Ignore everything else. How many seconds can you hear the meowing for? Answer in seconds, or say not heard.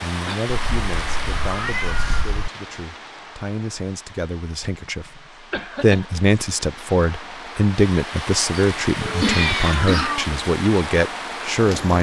3 s.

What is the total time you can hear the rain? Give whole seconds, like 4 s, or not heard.
12 s.